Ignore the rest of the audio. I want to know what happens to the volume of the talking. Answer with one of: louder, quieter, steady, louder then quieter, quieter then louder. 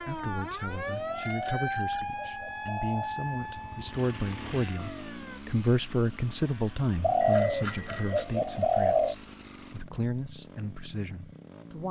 louder then quieter.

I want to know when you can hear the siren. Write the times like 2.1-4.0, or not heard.
0.0-5.4.